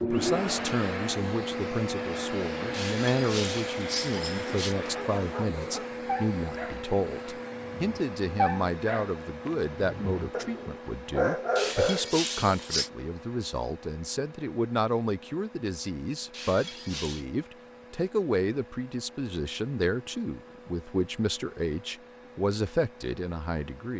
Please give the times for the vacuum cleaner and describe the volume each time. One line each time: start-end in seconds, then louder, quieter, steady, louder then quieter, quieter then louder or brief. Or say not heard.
0.0-23.9 quieter.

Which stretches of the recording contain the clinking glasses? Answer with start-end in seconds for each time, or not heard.
2.7-4.8, 11.6-12.9, 16.3-17.2.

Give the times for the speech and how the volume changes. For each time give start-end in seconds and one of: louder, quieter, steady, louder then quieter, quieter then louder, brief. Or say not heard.
0.0-23.9 steady.